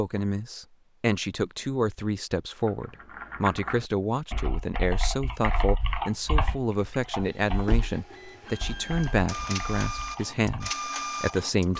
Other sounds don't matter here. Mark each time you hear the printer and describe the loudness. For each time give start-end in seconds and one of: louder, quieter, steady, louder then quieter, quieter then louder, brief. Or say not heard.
6.8-11.7 louder.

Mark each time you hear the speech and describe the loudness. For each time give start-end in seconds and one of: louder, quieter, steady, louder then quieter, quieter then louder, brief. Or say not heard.
0.0-11.7 steady.